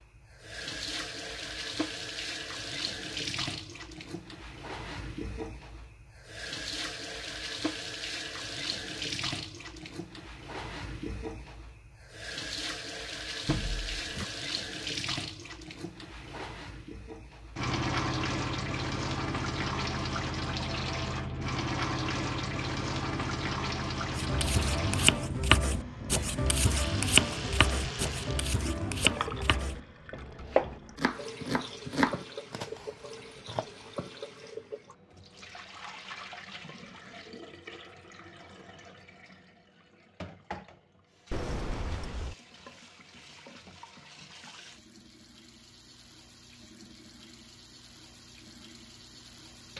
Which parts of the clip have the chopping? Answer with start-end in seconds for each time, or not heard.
24.1-33.6.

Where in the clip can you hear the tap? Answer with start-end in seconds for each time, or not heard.
0.0-49.7.